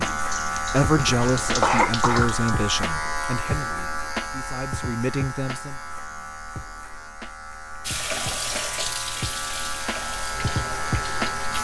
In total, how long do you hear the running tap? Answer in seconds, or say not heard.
6 s.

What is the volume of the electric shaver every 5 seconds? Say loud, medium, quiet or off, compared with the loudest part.
loud, medium, loud.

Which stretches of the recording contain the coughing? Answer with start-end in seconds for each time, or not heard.
0.9-2.6.